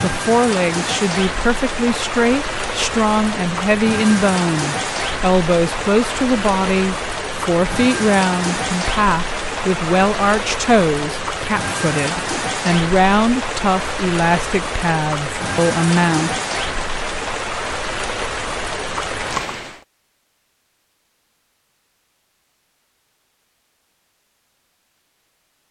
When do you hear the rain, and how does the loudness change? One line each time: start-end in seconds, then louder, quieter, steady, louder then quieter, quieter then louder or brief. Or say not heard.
0.0-19.9 steady.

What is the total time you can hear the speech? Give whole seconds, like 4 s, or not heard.
16 s.